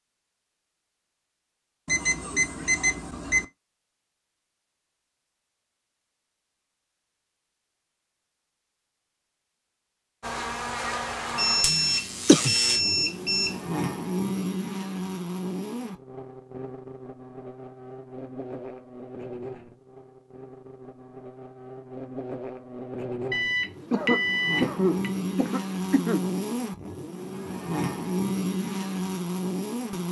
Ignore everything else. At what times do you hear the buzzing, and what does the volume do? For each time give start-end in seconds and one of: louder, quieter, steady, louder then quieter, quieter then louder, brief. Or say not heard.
10.2-30.0 quieter then louder.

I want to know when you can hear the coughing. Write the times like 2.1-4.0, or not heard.
11.7-12.6, 23.9-26.2.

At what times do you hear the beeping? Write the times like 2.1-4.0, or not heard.
1.9-3.5, 11.3-13.6, 23.3-25.1.